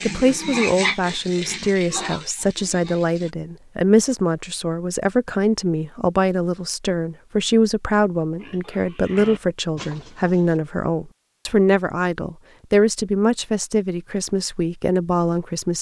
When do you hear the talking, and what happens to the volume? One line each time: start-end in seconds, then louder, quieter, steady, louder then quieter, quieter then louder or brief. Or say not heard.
0.0-15.7 steady.